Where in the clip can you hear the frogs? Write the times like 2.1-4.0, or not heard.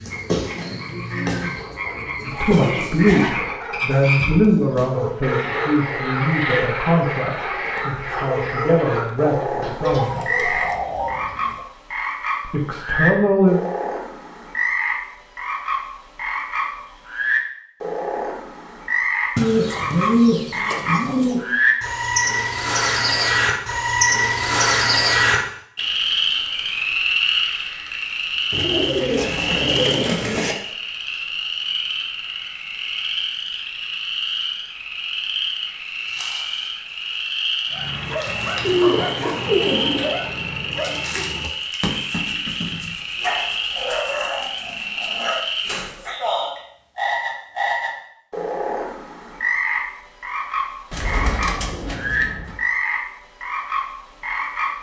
0.0-54.7.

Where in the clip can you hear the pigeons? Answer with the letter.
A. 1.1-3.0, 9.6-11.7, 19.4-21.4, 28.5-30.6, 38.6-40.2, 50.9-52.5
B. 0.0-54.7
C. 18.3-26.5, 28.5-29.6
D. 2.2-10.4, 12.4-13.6
A.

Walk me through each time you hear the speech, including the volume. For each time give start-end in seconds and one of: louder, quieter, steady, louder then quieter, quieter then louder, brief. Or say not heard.
2.2-10.4 quieter then louder
12.4-13.6 brief.